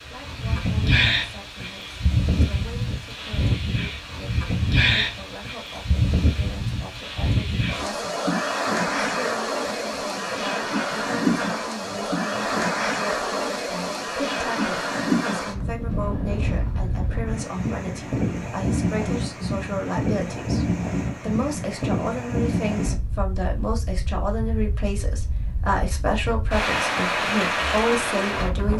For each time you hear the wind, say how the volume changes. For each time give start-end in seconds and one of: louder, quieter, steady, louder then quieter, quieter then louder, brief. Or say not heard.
0.0-28.7 steady.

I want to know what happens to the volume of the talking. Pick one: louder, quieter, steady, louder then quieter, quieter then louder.
louder.